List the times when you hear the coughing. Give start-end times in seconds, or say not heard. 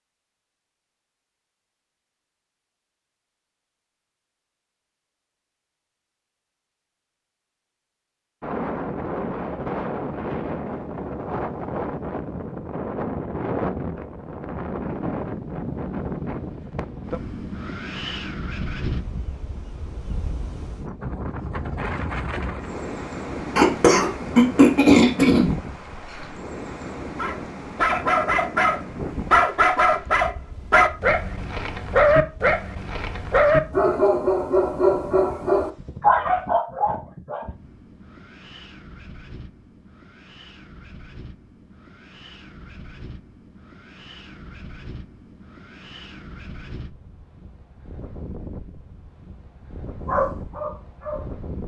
23.6-25.6.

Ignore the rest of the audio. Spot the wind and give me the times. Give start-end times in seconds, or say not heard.
8.4-51.6.